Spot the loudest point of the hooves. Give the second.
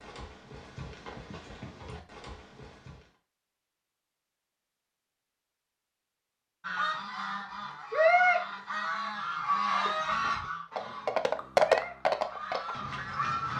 12 s.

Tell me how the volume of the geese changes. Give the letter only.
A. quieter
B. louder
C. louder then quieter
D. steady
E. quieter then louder
A.